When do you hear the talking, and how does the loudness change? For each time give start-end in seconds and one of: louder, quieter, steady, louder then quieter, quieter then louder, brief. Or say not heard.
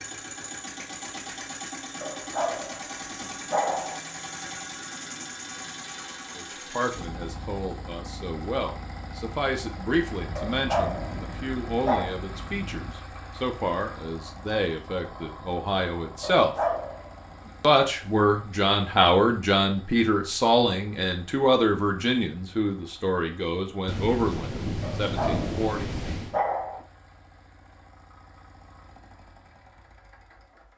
6.3-16.6 steady
17.6-25.9 quieter.